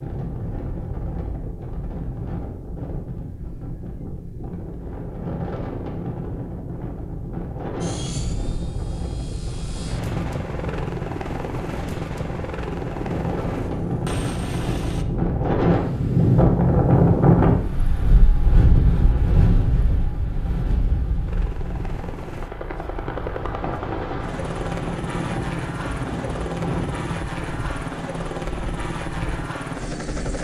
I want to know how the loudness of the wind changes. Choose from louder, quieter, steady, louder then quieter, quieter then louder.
louder then quieter.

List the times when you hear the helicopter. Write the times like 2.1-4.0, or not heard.
7.8-15.1, 21.2-30.3.